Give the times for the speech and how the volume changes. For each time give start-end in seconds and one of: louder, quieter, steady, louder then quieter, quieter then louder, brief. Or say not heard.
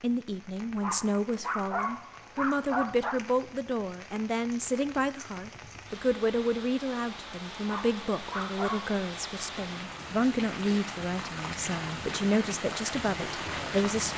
0.0-14.1 steady.